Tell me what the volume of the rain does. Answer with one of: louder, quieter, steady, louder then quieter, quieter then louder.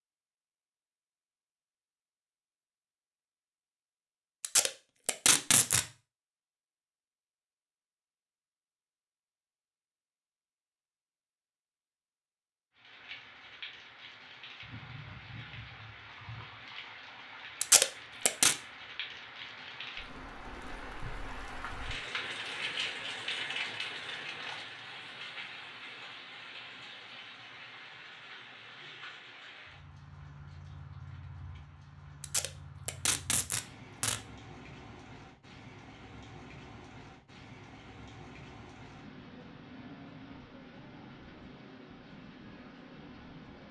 louder then quieter.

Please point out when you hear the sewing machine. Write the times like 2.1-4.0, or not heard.
not heard.